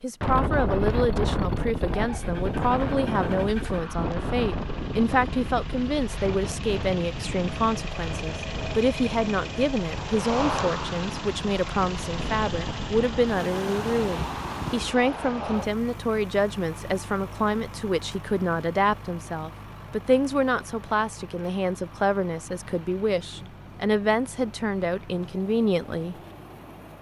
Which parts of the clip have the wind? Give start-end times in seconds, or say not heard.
0.2-14.9.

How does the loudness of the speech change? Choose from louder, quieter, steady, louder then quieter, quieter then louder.
steady.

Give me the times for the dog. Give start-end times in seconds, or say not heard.
not heard.